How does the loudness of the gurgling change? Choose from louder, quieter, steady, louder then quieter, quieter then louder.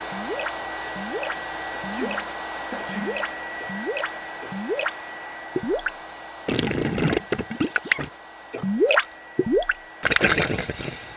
louder.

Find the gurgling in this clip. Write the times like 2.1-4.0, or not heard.
0.0-5.0, 5.5-11.1.